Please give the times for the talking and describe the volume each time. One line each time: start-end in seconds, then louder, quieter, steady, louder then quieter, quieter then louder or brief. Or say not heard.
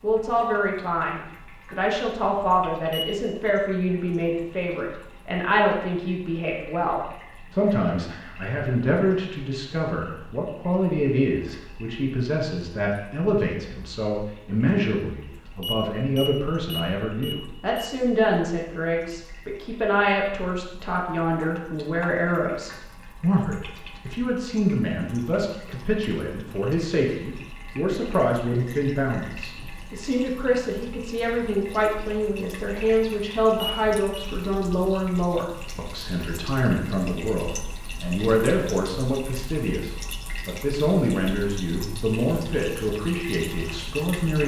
0.0-44.4 steady.